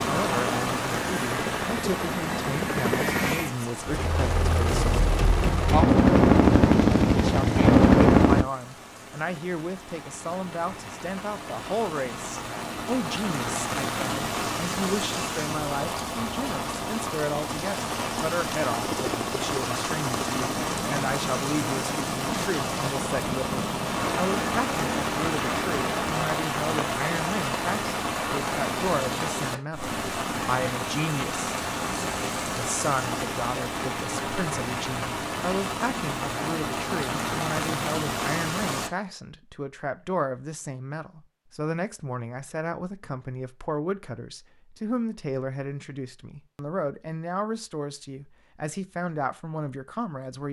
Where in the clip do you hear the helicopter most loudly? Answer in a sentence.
The volume of the helicopter peaks at 8 seconds.